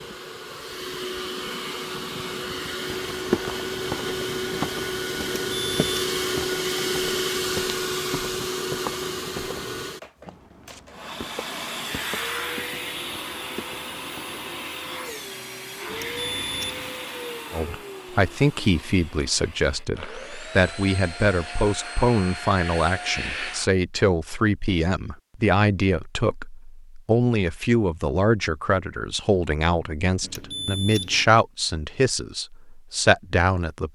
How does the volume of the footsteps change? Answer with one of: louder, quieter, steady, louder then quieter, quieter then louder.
quieter.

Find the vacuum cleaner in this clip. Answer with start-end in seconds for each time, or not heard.
0.0-23.7.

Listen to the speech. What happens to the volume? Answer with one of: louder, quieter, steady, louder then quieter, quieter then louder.
steady.